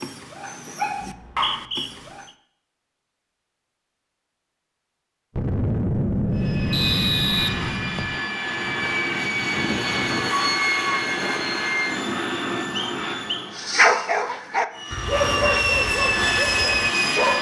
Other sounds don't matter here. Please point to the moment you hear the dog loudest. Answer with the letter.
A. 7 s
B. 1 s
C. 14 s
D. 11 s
C.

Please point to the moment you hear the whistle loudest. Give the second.
7 s.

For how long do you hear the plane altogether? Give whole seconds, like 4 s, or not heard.
10 s.